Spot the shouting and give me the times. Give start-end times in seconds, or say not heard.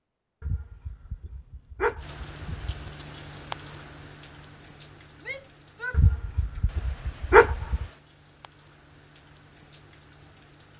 5.2-6.0.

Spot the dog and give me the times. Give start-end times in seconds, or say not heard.
0.4-2.8, 5.9-7.8.